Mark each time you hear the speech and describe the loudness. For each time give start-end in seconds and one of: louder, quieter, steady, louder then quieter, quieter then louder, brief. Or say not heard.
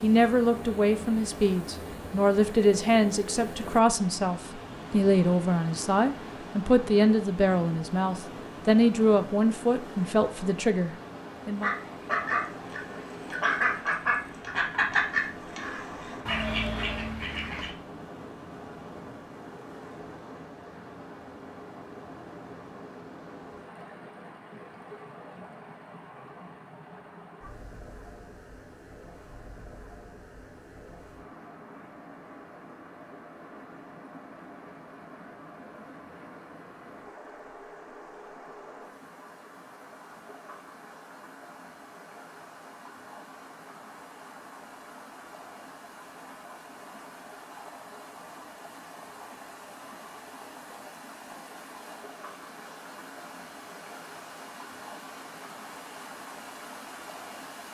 0.0-11.7 steady.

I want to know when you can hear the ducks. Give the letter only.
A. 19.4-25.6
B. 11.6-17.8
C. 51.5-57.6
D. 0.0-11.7
B.